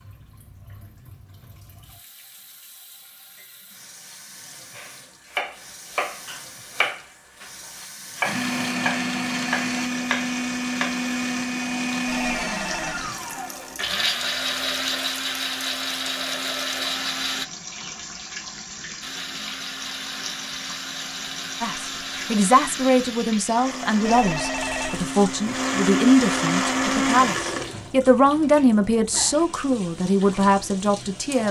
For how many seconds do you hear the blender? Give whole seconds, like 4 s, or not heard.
18 s.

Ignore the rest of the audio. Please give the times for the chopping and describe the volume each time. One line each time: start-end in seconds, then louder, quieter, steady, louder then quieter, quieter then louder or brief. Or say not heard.
4.8-11.0 steady.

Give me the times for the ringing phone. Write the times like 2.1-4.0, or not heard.
12.1-13.1, 24.0-25.1.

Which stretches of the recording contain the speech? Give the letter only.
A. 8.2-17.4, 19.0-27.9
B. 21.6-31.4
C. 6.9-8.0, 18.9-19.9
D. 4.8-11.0
B.